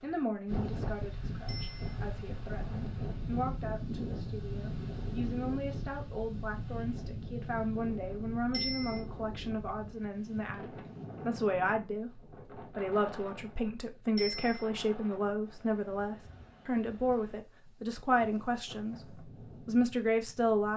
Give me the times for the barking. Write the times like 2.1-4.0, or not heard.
not heard.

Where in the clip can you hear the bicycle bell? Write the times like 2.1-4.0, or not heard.
1.4-1.9, 8.5-9.0, 14.2-14.7.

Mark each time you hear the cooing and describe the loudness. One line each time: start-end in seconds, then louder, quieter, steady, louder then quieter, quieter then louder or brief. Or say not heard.
not heard.